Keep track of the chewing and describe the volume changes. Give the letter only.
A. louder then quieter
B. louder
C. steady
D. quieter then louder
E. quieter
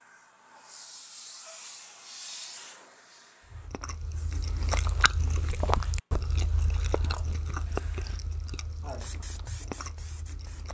E.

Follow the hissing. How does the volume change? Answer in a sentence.
The volume of the hissing goes down, then up.